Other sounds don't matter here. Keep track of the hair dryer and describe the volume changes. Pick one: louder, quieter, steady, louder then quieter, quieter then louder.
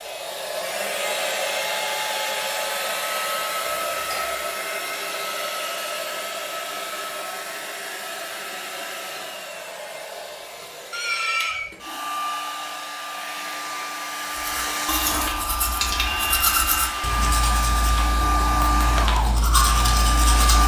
quieter then louder.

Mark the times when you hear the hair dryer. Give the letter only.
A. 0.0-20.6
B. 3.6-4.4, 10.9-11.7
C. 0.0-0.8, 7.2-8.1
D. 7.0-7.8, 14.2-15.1
A.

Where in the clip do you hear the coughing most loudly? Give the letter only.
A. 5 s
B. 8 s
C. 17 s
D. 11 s
D.